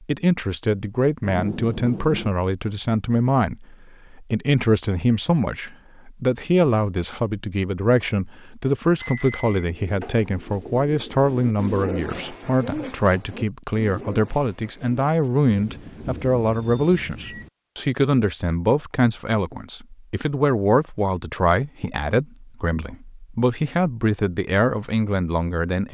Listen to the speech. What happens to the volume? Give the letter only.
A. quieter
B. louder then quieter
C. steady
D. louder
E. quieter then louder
C.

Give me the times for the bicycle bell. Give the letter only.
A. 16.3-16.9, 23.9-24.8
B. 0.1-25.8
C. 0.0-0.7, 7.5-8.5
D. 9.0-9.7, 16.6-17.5
D.